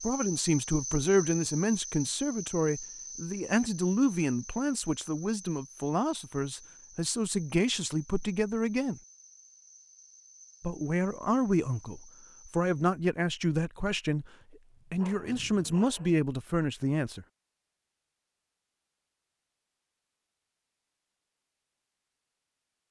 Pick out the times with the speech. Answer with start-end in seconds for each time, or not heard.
0.0-9.0, 10.6-14.3, 14.9-17.2.